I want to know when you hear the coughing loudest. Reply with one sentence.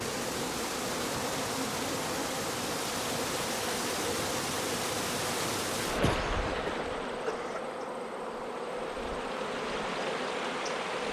The volume of the coughing peaks at 6 seconds.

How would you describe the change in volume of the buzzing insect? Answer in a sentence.
The volume of the buzzing insect stays about the same.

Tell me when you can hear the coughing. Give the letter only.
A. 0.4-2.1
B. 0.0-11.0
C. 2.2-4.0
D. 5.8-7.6
D.